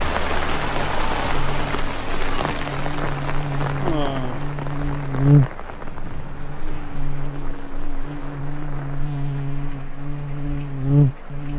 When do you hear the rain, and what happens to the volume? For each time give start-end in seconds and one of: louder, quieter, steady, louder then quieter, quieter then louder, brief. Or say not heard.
0.0-11.5 quieter.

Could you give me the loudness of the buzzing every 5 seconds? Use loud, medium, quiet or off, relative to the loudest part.
medium, loud, loud.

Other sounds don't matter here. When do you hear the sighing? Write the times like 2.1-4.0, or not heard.
3.8-4.5.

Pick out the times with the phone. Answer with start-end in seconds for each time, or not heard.
not heard.